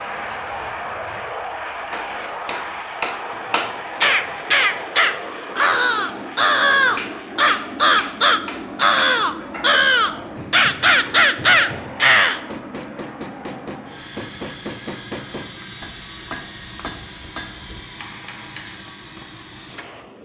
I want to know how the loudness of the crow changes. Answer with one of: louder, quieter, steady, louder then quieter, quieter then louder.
steady.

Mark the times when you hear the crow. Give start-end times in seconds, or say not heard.
4.0-12.4.